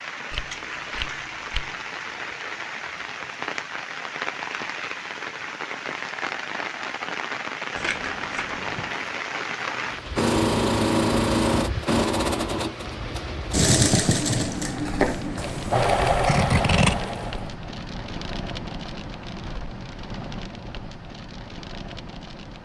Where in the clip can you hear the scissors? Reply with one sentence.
You can hear the scissors from 0.3 to 1.8 s, from 7.8 to 8.9 s and from 16.1 to 17.0 s.